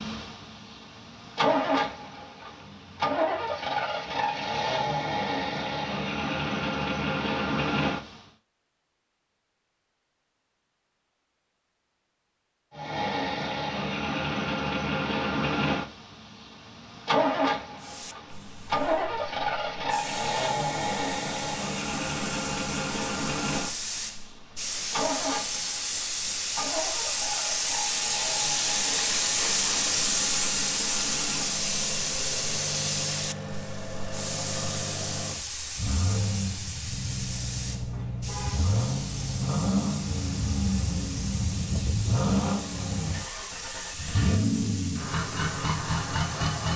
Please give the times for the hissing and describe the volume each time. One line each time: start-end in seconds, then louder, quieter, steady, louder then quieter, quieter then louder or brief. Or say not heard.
17.8-46.7 louder then quieter.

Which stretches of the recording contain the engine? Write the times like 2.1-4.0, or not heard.
0.0-8.2, 12.7-46.7.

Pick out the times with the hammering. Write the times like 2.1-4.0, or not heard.
not heard.